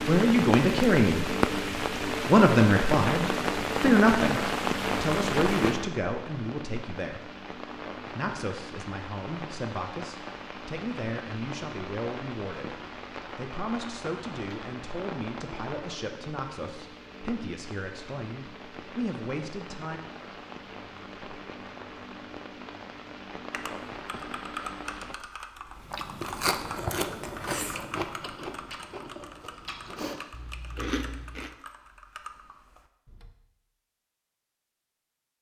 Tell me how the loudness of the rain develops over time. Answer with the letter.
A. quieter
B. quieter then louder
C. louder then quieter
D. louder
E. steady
A.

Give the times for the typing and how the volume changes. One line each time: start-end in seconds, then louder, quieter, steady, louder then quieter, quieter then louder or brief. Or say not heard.
23.5-33.4 quieter.